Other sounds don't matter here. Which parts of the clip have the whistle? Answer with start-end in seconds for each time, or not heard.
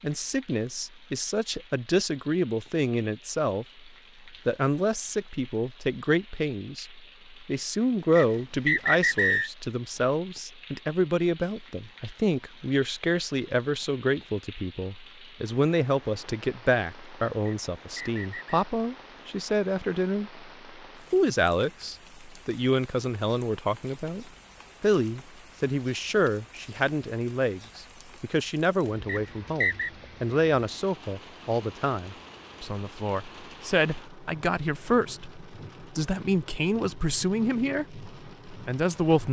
8.2-9.5, 17.4-18.6, 29.1-29.9.